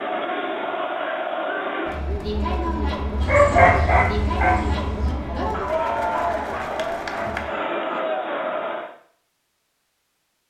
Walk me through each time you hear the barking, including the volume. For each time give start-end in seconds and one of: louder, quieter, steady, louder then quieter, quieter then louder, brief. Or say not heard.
3.2-8.1 quieter.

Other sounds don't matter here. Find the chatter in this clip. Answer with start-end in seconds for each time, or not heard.
0.0-8.9.